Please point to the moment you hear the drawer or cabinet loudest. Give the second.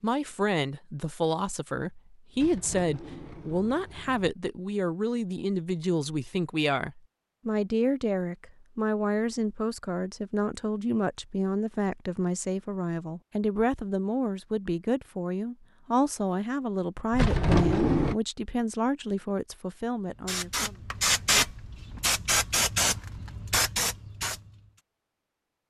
18 s.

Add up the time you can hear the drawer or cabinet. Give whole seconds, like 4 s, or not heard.
3 s.